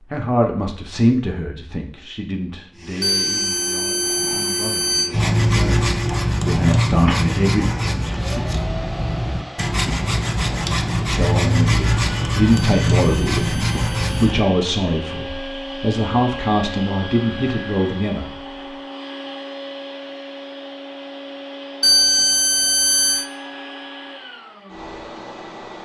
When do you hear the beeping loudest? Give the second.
22 s.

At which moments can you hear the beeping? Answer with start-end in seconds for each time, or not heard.
3.0-5.1, 12.6-14.3, 21.8-23.2.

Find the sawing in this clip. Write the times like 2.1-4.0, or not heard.
5.1-14.4.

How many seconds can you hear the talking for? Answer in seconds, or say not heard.
15 s.